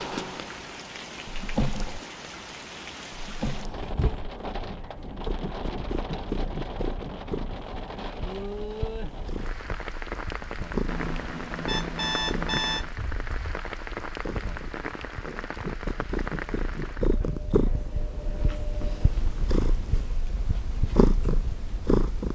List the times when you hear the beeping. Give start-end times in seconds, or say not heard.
10.8-12.9.